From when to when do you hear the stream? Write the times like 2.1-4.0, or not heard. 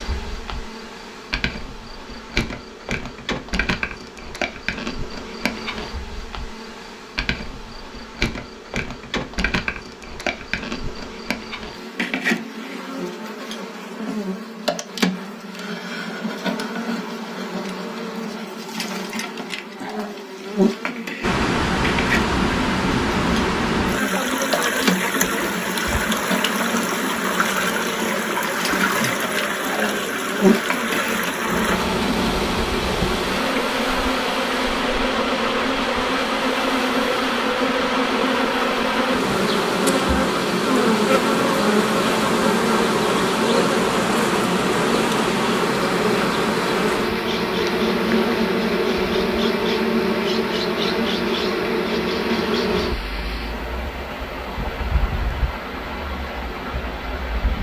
21.2-57.5.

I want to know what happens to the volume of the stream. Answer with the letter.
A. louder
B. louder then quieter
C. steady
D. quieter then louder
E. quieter
E.